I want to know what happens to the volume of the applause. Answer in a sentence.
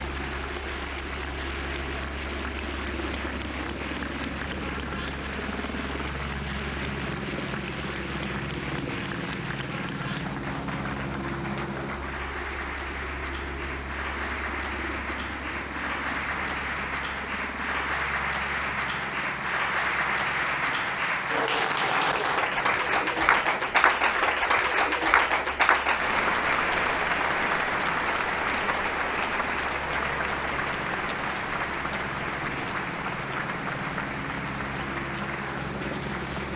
The loudness of the applause goes up, then down.